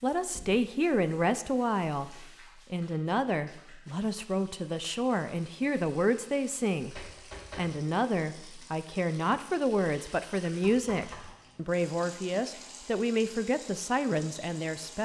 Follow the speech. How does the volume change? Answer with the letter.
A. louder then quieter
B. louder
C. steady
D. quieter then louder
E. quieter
C.